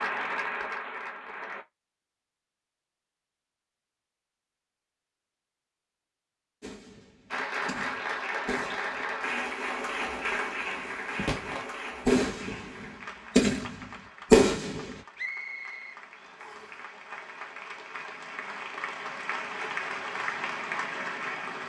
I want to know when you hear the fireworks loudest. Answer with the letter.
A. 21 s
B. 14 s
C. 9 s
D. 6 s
B.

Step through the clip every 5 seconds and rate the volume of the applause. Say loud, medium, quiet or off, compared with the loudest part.
loud, loud, medium, medium, loud.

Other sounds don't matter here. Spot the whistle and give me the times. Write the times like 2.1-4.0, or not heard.
15.2-16.8.